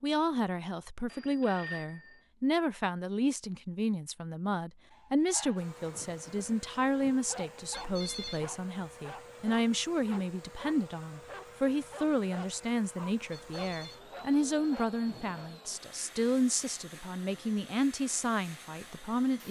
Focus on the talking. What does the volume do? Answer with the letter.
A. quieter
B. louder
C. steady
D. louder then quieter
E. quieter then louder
C.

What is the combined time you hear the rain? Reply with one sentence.
You can't hear the rain here.